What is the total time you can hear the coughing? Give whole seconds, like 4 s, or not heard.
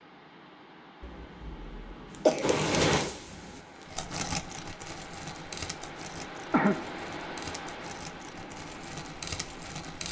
2 s.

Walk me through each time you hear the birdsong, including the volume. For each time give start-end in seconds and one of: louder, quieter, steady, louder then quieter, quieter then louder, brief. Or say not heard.
not heard.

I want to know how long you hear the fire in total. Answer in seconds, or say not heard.
8 s.